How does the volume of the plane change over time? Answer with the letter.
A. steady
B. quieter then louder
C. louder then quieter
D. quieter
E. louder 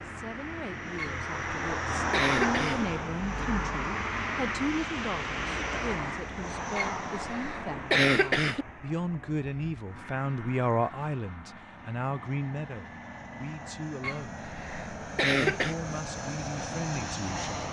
B.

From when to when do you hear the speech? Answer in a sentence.
The speech can be heard from 0.0 to 14.4 s and from 15.5 to 17.4 s.